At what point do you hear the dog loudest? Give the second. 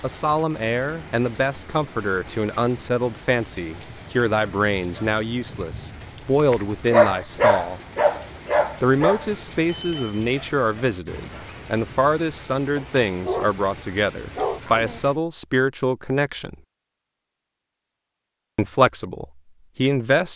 7 s.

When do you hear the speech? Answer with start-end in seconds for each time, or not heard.
0.0-7.8, 8.8-16.6, 18.6-20.3.